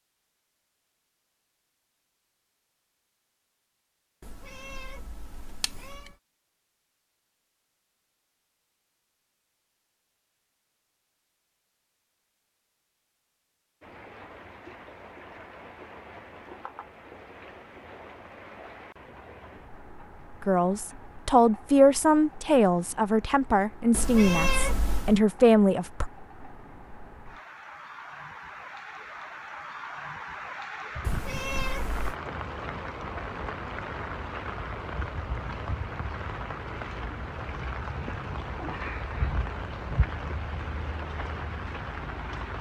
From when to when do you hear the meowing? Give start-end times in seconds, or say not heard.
4.2-6.1, 23.9-25.2, 31.0-32.1.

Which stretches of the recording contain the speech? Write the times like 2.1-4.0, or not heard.
20.4-26.1.